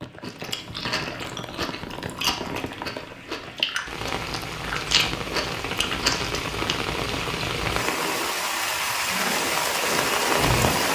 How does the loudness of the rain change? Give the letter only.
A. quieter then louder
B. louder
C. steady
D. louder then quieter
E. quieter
B.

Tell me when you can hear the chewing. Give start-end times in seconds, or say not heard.
0.2-6.8.